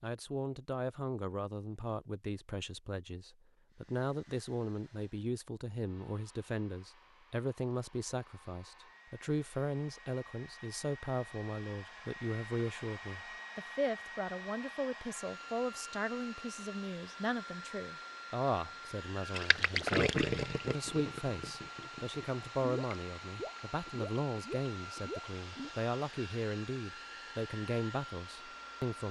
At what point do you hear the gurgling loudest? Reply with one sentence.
The loudest moment of the gurgling is at 20 seconds.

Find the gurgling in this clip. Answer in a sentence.
You can hear the gurgling from 19.3 to 25.7 s.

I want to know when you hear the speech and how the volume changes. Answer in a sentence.
You can hear the speech from 0.0 to 29.0 s, at a steady volume.